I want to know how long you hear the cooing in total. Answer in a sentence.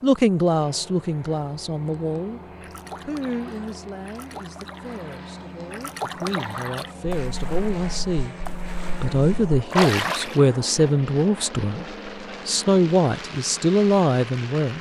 You can't hear the cooing here.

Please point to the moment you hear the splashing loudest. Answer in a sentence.
The loudest moment of the splashing is at 10 seconds.